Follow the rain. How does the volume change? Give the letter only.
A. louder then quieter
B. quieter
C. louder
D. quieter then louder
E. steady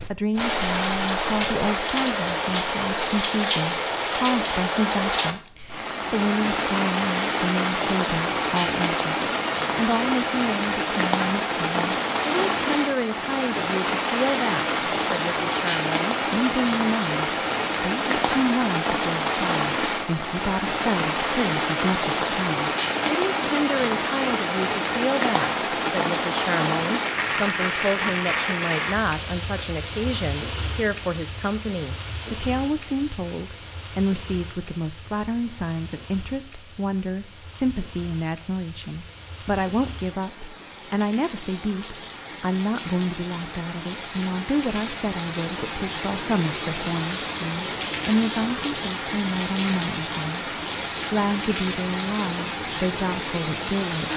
D.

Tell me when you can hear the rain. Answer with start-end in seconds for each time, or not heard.
0.0-54.1.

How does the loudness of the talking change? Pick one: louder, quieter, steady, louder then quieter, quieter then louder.
steady.